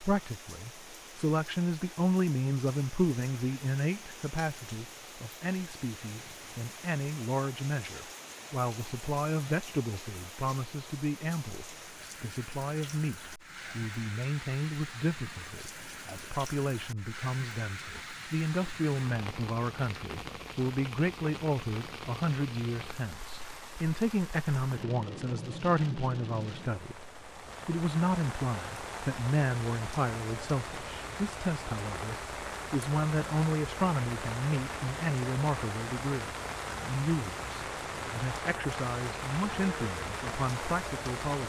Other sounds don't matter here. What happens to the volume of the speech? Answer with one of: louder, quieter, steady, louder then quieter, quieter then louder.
steady.